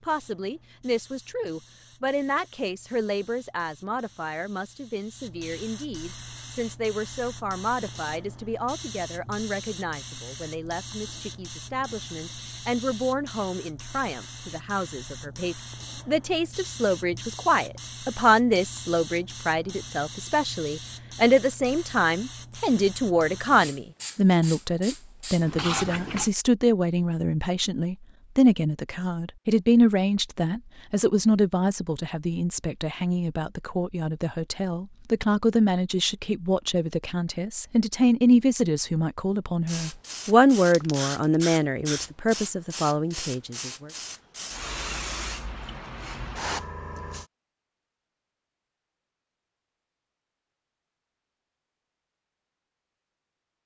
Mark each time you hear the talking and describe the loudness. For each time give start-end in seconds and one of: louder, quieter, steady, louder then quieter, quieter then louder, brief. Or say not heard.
0.1-43.9 louder.